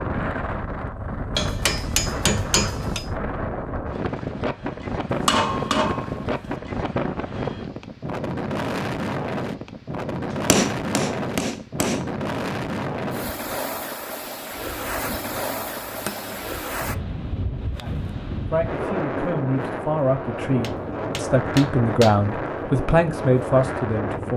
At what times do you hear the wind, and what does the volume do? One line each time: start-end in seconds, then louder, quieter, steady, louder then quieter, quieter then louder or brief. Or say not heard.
0.0-24.3 steady.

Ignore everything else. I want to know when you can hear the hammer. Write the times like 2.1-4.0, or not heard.
1.4-3.1, 5.1-6.5, 10.3-12.1, 14.6-16.6, 20.6-22.2.